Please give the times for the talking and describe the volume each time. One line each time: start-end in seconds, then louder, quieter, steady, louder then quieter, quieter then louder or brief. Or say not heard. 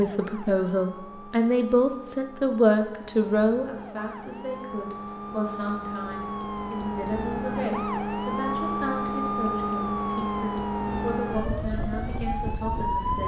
0.0-13.2 quieter.